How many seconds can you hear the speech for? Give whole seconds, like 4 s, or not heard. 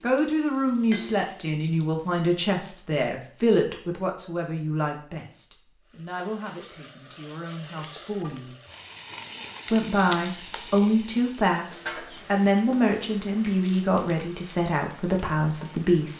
15 s.